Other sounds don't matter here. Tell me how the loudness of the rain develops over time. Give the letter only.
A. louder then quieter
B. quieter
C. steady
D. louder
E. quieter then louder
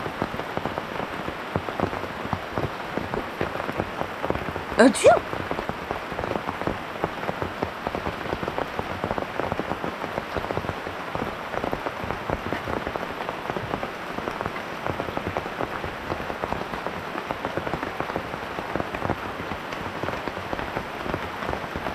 C.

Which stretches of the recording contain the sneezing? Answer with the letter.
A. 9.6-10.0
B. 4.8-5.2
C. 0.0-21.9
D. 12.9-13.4
B.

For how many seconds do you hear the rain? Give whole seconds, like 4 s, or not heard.
22 s.